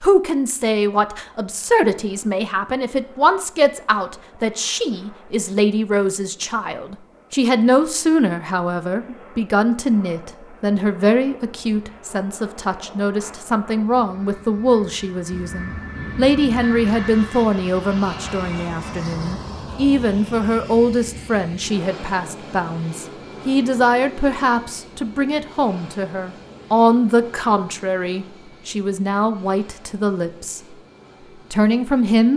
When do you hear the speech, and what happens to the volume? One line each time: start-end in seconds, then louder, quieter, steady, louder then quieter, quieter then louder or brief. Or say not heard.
0.0-30.8 steady
31.5-32.3 brief.